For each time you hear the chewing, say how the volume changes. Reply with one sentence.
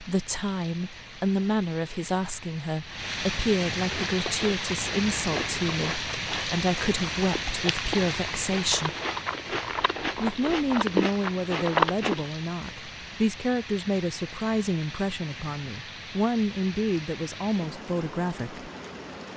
The chewing can be heard from 3.9 to 12.2 s, getting louder.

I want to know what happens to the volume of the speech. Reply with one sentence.
The volume of the speech stays about the same.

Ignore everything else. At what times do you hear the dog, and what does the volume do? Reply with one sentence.
The dog can't be heard in this clip.